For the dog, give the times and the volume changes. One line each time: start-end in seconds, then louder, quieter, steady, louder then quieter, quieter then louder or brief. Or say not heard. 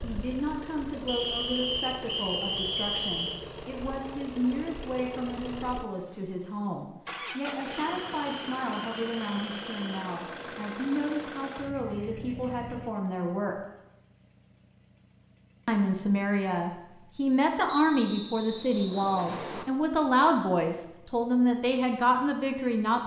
not heard.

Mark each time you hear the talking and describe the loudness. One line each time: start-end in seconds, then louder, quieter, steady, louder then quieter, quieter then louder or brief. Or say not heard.
0.0-13.6 steady
15.7-23.0 steady.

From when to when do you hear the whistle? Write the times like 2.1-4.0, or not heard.
1.1-3.5, 7.8-10.1, 17.6-19.6.